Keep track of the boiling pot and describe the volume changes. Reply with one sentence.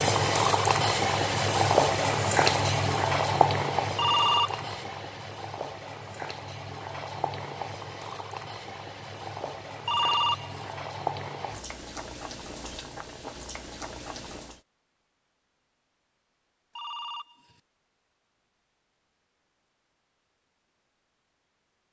The loudness of the boiling pot goes down.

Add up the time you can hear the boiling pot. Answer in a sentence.
You can hear the boiling pot for 15 seconds altogether.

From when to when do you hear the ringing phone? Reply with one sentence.
The ringing phone can be heard from 4.0 to 4.7 s, from 9.8 to 10.8 s and from 16.8 to 17.6 s.